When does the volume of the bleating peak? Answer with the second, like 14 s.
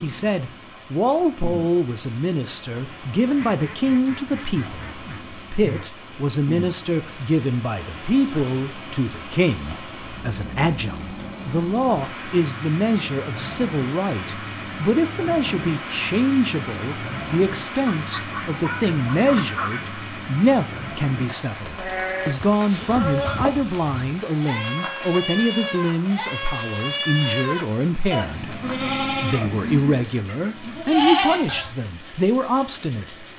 31 s.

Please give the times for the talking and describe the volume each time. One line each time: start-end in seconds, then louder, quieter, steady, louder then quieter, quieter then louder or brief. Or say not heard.
0.0-33.2 steady.